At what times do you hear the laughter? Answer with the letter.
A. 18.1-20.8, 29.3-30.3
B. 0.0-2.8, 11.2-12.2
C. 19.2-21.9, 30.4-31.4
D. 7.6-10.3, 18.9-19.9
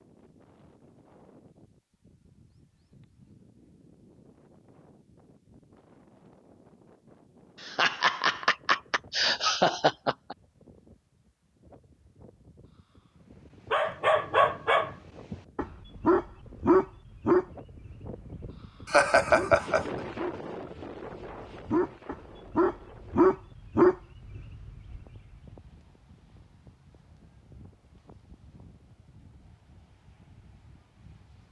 D.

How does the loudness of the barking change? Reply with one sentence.
The loudness of the barking goes down, then up.